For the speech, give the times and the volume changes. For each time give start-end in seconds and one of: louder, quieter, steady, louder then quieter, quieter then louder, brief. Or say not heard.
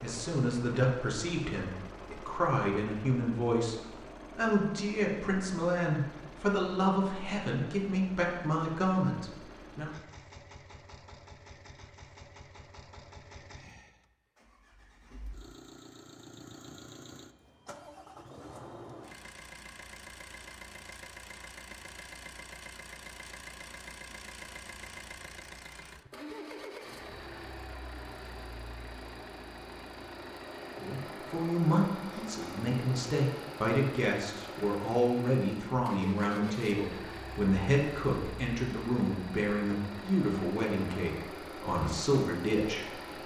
0.0-9.9 steady
30.8-43.2 steady.